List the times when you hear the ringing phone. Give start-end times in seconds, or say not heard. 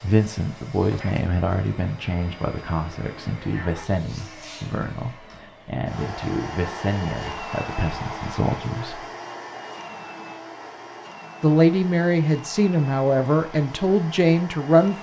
not heard.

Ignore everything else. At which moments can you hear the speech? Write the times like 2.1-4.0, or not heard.
0.0-9.1, 11.4-14.9.